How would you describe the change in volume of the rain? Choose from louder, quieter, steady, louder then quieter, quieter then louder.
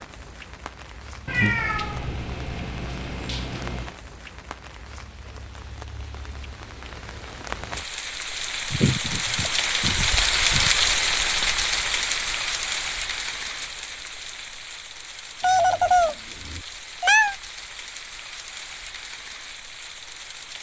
louder then quieter.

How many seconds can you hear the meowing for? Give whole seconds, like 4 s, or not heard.
7 s.